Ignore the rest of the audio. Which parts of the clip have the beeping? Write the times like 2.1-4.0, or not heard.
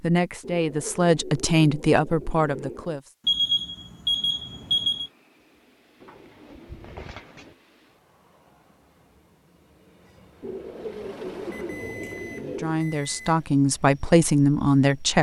3.2-5.1, 11.5-13.4.